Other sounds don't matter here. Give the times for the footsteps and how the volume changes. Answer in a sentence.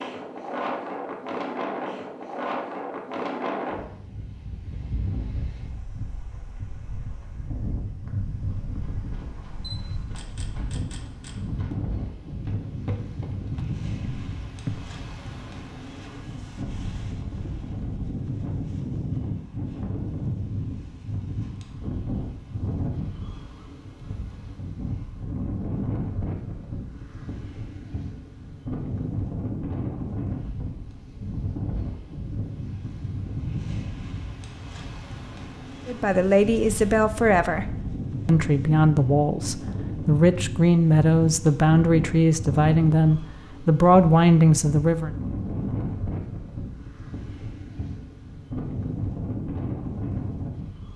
You can hear the footsteps from 8.7 to 14.8 s, getting louder.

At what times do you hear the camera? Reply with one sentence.
The camera can be heard from 9.6 to 11.4 s.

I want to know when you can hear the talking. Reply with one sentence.
The talking can be heard from 35.9 to 45.1 s.